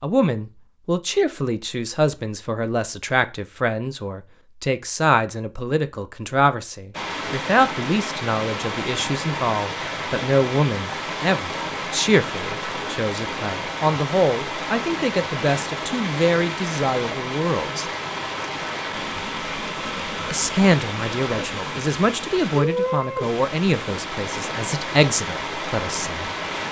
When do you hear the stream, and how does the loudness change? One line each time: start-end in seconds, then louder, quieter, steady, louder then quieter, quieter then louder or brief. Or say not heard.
6.9-26.6 steady.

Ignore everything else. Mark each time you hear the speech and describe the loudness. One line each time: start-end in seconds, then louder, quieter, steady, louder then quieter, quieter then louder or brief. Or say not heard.
0.0-17.9 steady
20.3-26.3 quieter then louder.